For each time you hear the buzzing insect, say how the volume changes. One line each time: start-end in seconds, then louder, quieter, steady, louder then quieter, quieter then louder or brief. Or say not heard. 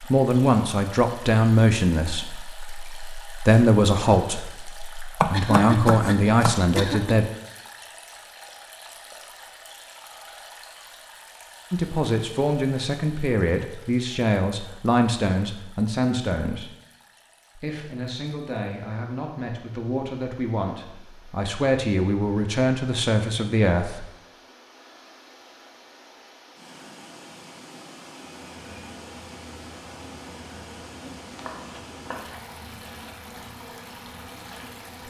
28.4-35.0 steady.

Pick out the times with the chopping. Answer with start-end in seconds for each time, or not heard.
5.2-6.9, 31.4-32.4.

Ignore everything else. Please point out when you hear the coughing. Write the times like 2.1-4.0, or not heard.
5.3-7.2.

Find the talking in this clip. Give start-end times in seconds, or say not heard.
0.0-7.2, 11.7-16.7, 17.6-24.1.